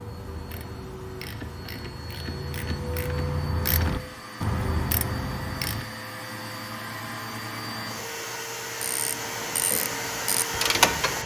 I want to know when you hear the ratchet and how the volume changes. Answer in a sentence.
The ratchet can be heard from 0.0 to 5.8 s, getting louder; and briefly from 8.8 to 11.2 s.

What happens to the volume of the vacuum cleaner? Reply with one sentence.
The loudness of the vacuum cleaner goes up.